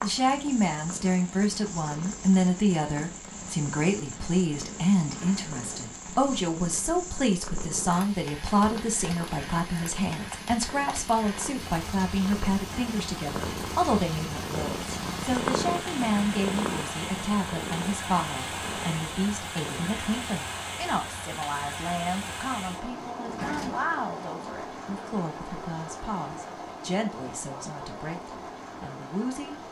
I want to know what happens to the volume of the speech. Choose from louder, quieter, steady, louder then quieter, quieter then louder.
quieter.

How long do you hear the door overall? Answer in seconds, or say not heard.
2 s.